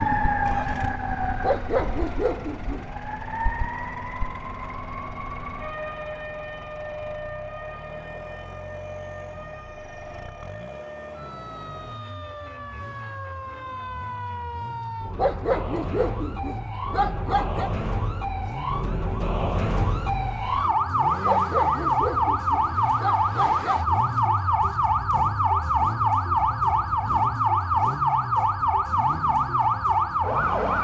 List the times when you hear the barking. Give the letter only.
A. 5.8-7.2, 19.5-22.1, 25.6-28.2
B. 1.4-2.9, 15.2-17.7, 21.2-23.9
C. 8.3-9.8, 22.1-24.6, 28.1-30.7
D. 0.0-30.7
B.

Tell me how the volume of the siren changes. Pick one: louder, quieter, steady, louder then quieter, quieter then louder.
quieter then louder.